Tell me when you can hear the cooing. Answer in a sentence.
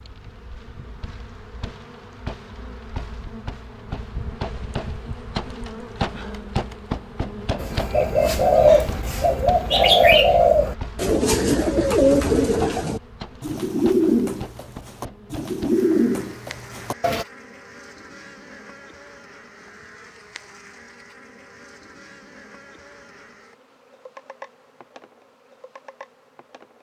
You can hear the cooing from 7.6 to 17.2 s.